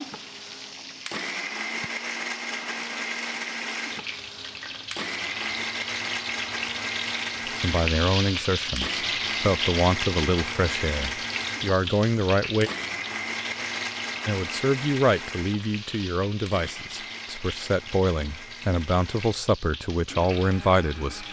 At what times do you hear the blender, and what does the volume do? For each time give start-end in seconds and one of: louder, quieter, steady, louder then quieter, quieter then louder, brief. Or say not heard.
0.0-21.2 quieter.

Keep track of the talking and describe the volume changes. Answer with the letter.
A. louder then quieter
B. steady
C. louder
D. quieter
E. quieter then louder
B.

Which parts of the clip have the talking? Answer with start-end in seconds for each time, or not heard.
7.6-12.7, 14.2-21.2.